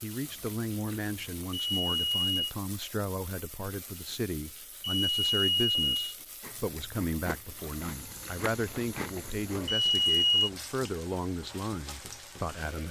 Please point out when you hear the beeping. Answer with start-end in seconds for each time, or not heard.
1.5-2.5, 4.8-6.0, 9.7-10.5.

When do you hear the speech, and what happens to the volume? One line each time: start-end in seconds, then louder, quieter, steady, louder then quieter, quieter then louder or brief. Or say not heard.
0.0-12.8 steady.